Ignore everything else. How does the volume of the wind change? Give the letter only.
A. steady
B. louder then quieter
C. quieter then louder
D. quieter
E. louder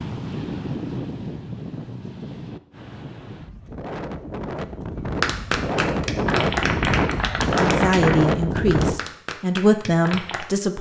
C.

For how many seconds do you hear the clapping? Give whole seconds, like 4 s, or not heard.
5 s.